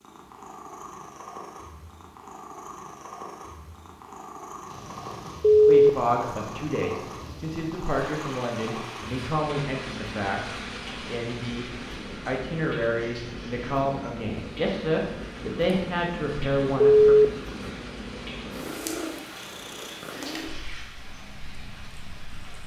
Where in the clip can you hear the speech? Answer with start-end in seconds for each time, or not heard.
5.7-17.1.